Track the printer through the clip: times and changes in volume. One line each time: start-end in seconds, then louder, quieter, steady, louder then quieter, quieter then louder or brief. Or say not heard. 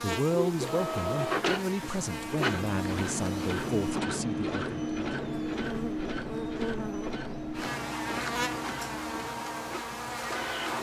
0.1-10.7 quieter.